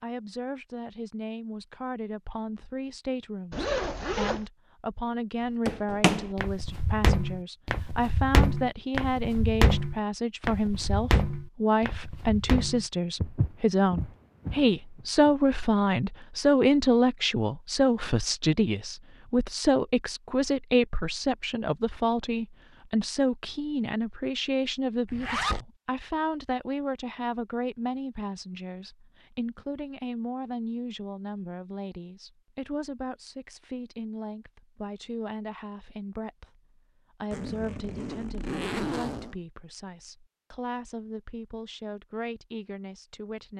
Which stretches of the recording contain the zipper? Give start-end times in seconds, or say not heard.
3.5-4.5, 25.1-25.6, 37.3-39.4.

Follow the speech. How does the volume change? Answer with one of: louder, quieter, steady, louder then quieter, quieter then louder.
louder then quieter.